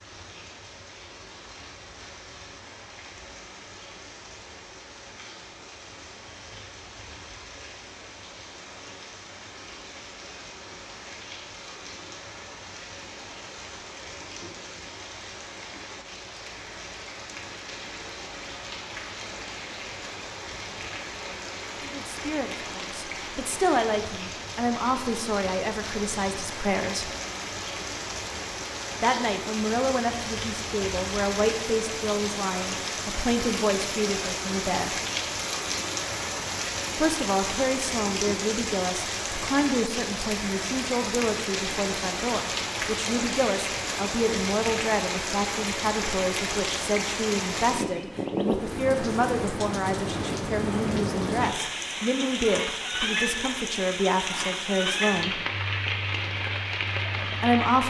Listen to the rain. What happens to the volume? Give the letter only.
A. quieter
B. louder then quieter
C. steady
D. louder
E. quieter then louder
D.